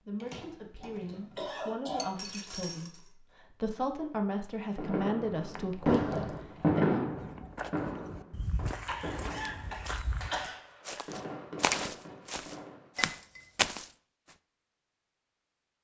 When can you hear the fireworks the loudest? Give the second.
7 s.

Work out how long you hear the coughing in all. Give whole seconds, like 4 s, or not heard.
4 s.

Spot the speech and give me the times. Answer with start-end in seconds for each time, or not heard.
0.1-7.2.